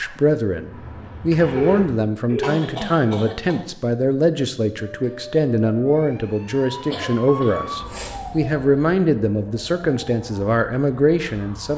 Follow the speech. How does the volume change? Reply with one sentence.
The loudness of the speech stays about the same.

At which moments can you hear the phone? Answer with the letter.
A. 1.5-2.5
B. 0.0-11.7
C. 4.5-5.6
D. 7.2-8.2
A.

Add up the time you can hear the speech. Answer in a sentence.
The speech can be heard for 12 seconds in total.